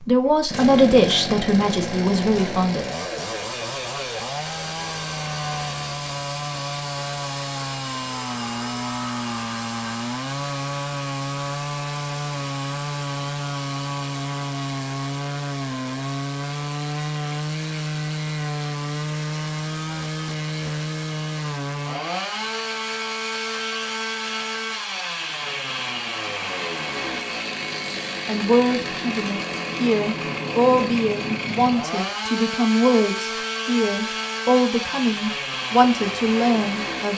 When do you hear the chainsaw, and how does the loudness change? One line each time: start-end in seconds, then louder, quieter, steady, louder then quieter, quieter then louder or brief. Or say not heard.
0.0-37.1 steady.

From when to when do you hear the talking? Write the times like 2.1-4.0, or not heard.
0.1-2.9, 28.2-37.1.